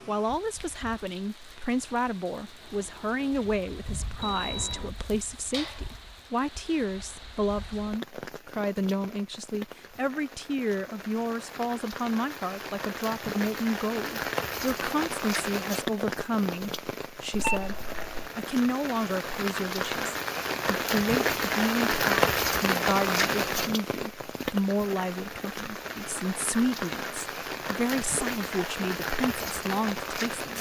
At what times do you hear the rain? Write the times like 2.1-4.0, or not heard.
0.0-30.5.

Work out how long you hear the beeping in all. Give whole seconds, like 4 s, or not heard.
2 s.